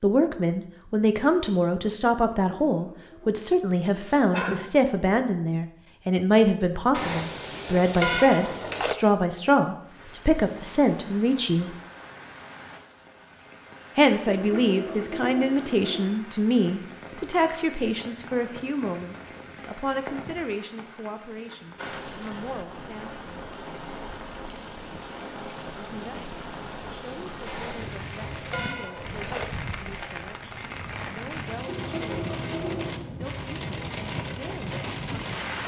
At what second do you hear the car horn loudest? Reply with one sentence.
The loudest moment of the car horn is at 8 seconds.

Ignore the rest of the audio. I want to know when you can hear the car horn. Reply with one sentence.
The car horn can be heard from 6.9 to 8.9 s and from 27.4 to 29.4 s.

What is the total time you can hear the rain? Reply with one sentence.
You can hear the rain for 26 seconds altogether.